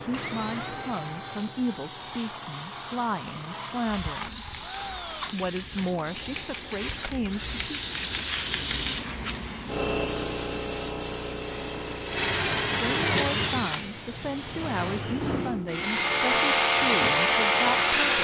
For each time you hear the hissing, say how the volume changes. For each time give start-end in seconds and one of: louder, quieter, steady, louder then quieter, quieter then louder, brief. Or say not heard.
0.0-18.1 louder then quieter.